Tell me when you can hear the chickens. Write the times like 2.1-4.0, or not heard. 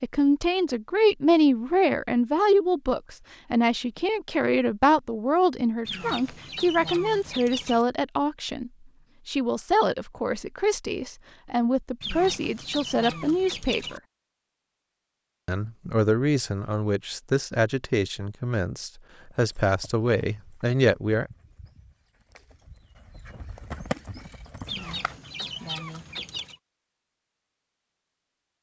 5.8-7.8, 12.0-14.0, 24.6-26.6.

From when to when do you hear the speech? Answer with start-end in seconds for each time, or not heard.
0.0-14.0, 15.4-21.3.